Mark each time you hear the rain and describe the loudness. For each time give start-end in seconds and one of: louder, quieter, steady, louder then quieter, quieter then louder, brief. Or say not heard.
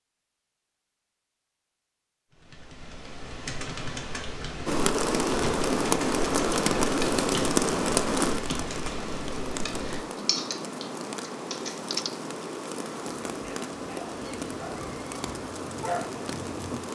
4.7-16.9 quieter.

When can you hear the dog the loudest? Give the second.
16 s.